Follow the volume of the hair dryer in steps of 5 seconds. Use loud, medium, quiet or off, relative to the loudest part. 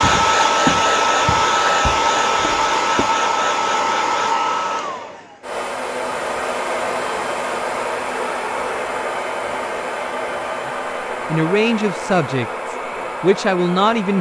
loud, medium, medium.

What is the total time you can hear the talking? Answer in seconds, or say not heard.
3 s.